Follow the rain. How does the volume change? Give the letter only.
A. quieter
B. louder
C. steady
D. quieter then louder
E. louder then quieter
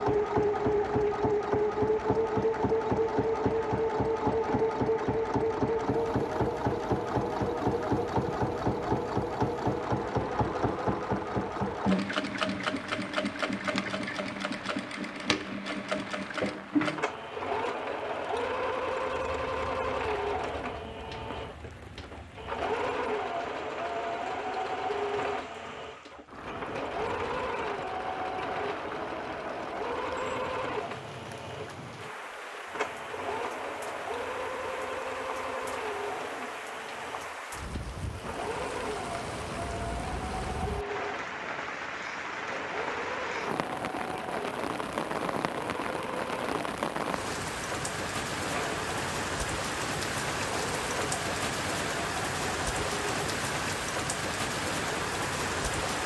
B.